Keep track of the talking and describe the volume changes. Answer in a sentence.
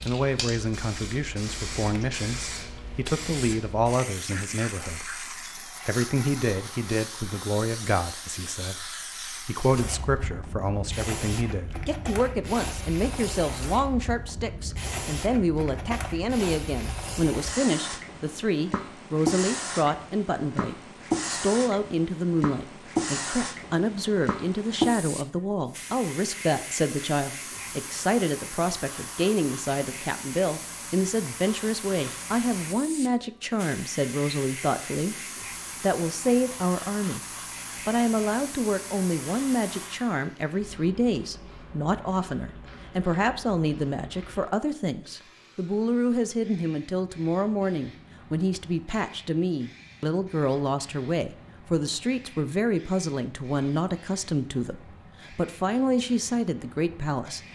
The volume of the talking stays about the same.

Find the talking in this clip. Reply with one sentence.
You can hear the talking from 0.0 to 35.1 s and from 35.8 to 57.4 s.